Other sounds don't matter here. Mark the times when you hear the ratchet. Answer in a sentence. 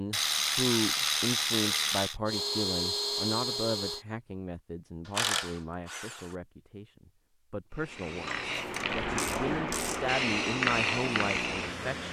The ratchet can be heard from 0.1 to 2.2 s, from 5.0 to 6.3 s and from 8.2 to 10.2 s.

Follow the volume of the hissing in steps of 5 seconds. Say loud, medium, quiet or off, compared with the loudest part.
off, loud, loud.